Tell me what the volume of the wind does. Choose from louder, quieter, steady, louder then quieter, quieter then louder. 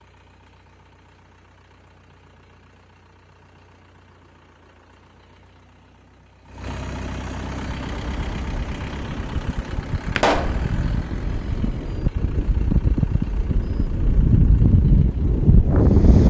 louder.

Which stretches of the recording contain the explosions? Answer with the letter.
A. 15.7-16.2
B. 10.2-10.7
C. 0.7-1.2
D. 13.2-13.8
B.